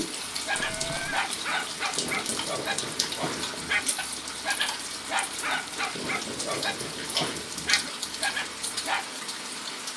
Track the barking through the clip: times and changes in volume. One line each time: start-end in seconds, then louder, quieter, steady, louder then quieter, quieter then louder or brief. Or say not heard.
0.2-9.1 steady.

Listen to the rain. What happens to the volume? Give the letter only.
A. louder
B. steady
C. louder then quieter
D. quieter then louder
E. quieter
B.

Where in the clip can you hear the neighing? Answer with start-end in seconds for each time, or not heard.
0.5-1.2.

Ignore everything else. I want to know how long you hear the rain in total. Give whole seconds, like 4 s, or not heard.
10 s.